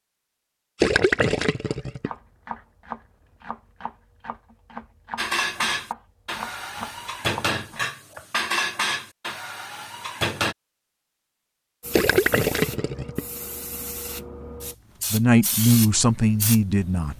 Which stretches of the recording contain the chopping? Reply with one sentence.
You can hear the chopping from 1.6 to 8.2 s.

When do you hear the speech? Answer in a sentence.
You can hear the speech from 15.1 to 17.1 s.